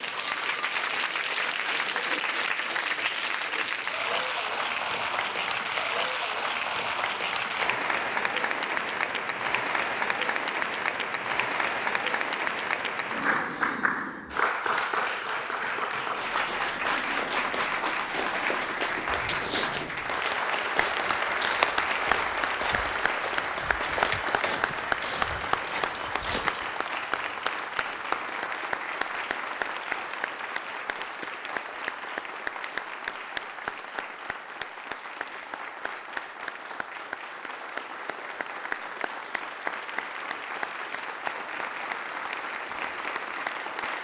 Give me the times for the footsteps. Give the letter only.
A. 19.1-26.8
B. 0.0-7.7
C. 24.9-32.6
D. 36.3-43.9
A.